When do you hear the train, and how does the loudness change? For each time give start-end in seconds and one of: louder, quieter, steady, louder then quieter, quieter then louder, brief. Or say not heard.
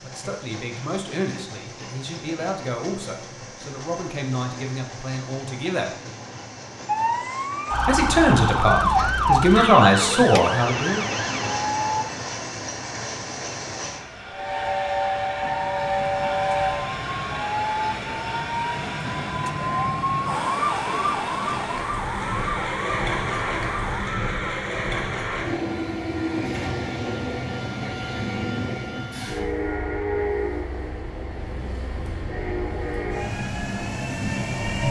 0.0-34.8 louder.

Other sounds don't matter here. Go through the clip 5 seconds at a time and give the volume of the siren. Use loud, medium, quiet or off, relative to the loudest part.
off, loud, medium, medium, medium, off, off.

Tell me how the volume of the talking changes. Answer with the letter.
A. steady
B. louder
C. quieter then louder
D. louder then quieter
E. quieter
B.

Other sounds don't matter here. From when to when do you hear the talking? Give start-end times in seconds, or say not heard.
0.0-6.0, 7.8-11.1.